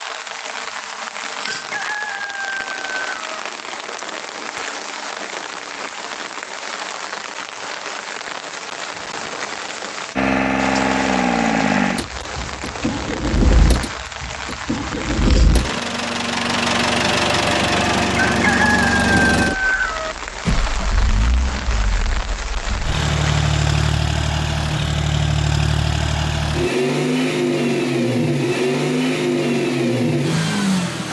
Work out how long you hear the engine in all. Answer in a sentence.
The engine can be heard for 21 seconds in total.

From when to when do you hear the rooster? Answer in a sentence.
You can hear the rooster from 1.4 to 3.4 s and from 18.4 to 20.1 s.